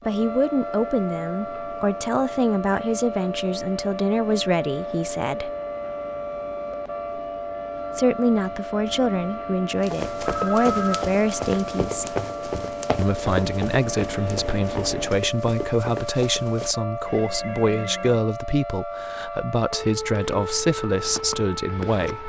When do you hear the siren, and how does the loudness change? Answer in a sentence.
The siren can be heard from 0.0 to 22.2 s, at a steady volume.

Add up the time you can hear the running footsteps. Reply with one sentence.
The running footsteps can be heard for 7 seconds in total.